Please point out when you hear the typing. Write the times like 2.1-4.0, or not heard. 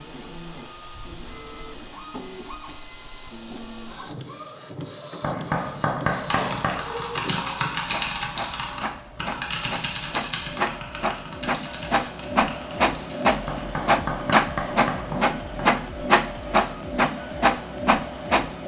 6.2-13.6.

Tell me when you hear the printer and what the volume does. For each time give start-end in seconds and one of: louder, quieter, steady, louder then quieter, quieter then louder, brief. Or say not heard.
0.0-18.6 louder.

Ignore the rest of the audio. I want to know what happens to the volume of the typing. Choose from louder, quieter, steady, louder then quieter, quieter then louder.
quieter.